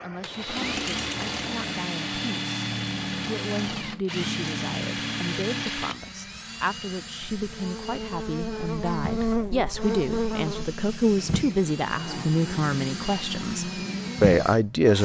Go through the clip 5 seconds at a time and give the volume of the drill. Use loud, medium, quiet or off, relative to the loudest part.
loud, medium, medium.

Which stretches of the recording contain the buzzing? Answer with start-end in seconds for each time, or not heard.
7.3-15.0.